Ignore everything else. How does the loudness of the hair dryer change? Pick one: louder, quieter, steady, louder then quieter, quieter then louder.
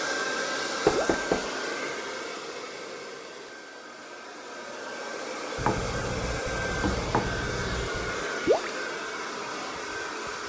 quieter then louder.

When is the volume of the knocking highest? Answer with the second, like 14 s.
1 s.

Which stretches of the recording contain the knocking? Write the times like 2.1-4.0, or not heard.
0.8-1.6, 5.5-8.2.